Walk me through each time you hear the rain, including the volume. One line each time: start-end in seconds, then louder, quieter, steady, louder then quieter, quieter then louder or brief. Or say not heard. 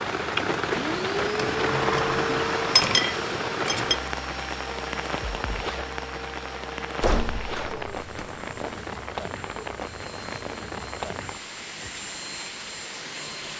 0.0-13.5 quieter.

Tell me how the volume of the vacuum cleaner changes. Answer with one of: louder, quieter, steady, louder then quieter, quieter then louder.
quieter then louder.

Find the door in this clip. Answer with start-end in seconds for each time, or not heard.
1.4-2.7, 7.0-8.8.